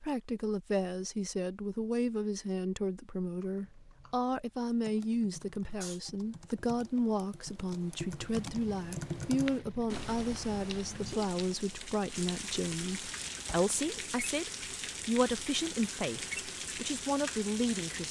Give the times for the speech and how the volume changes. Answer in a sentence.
You can hear the speech from 0.0 to 18.0 s, at a steady volume.